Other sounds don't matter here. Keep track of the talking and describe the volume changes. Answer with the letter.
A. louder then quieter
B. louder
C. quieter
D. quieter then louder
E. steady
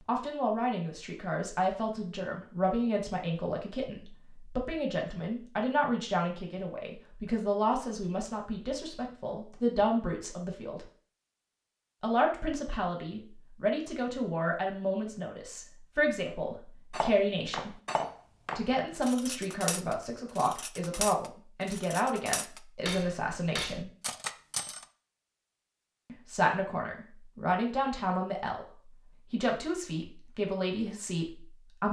E.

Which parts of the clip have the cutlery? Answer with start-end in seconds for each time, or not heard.
16.9-24.9.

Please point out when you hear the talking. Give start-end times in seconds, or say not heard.
0.1-10.8, 12.0-17.8, 18.6-23.9, 26.1-31.8.